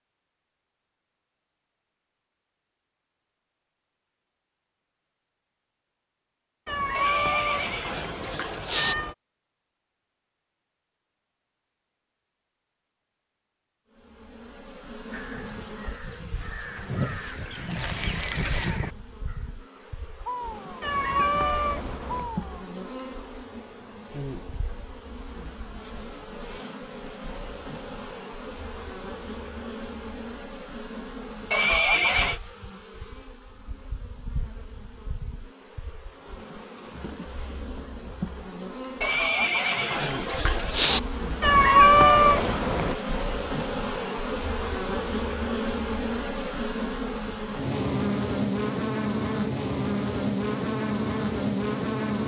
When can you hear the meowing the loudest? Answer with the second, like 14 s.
42 s.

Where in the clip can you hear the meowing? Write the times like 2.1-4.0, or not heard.
6.7-9.2, 20.8-22.3, 41.4-43.0.